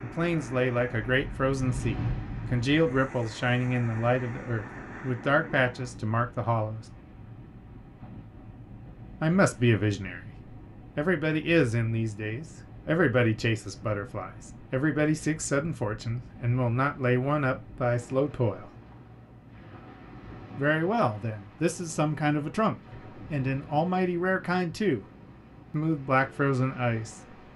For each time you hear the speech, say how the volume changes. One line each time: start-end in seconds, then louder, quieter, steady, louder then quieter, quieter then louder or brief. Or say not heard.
0.0-6.8 steady
9.2-10.3 brief
10.9-18.7 steady
20.6-25.1 steady
25.7-27.5 brief.